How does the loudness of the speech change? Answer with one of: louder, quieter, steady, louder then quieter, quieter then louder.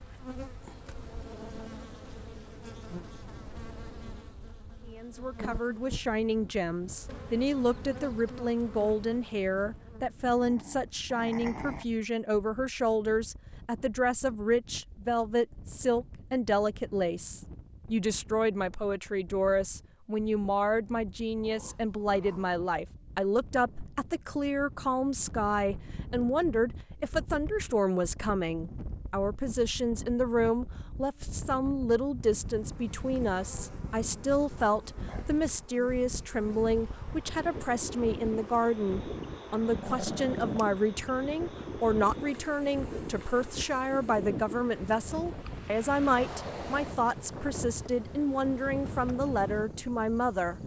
steady.